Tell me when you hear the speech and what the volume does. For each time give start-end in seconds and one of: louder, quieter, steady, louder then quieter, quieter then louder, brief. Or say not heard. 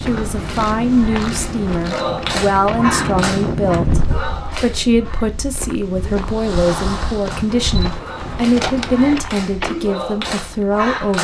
0.0-11.2 steady.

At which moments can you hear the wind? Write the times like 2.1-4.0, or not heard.
0.0-7.6.